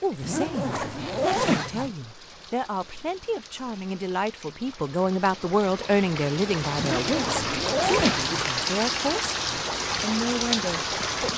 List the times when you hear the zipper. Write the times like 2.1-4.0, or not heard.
0.2-1.9, 6.8-8.4.